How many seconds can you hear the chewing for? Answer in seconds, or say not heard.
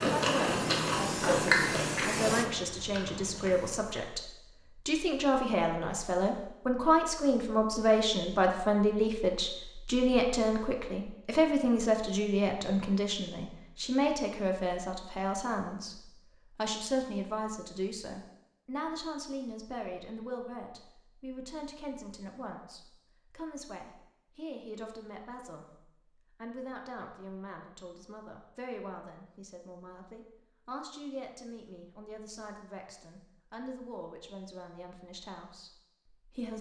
4 s.